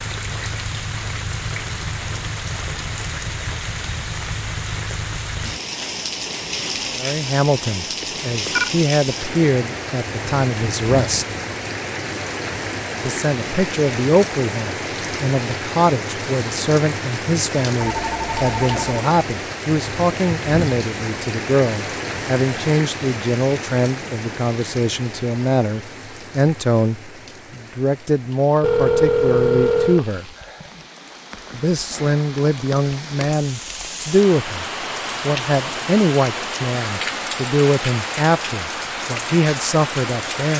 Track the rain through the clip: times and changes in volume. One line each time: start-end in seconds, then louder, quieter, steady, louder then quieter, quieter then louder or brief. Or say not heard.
0.0-40.5 quieter then louder.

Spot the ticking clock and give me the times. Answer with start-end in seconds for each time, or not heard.
not heard.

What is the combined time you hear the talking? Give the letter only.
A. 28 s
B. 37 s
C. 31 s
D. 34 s
C.